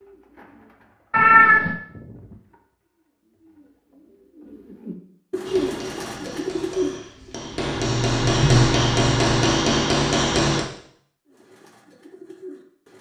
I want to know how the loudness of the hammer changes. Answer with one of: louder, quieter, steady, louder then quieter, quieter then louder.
louder.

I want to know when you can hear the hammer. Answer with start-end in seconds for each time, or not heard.
5.5-10.7.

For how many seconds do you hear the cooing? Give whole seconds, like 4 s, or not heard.
9 s.